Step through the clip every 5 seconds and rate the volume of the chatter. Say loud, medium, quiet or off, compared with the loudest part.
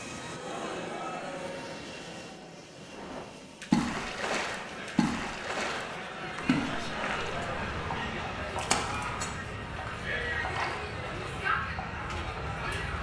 medium, loud, loud.